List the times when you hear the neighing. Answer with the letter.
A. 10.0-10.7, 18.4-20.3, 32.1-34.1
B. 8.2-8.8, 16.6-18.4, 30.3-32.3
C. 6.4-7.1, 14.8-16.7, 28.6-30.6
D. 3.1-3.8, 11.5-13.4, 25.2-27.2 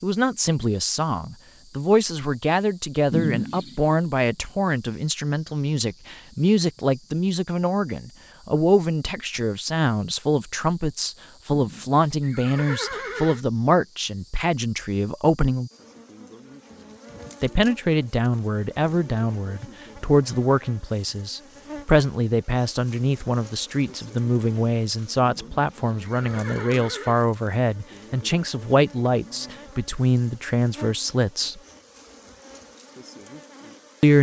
D.